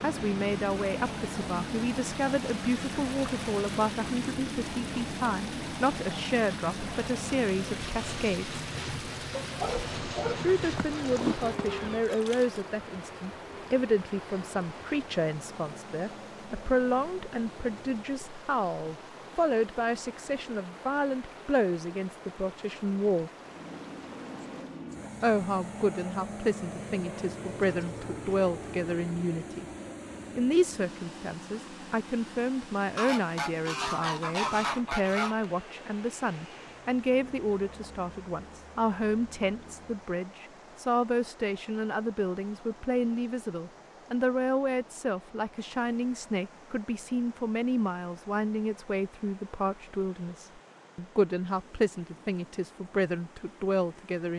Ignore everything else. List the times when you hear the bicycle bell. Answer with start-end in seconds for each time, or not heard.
not heard.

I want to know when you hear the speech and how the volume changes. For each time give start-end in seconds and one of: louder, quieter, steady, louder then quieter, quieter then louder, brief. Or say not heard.
0.0-8.6 steady
10.4-23.3 steady
25.2-29.6 steady
30.4-54.3 steady.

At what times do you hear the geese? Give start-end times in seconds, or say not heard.
10.6-12.6, 33.0-35.5.